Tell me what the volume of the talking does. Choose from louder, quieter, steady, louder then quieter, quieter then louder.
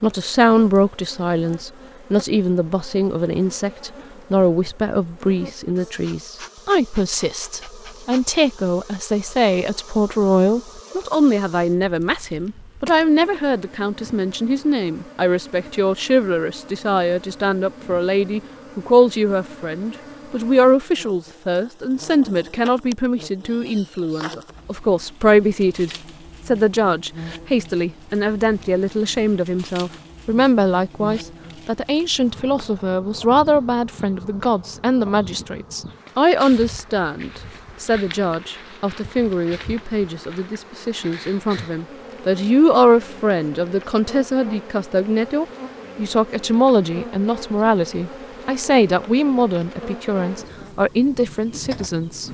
steady.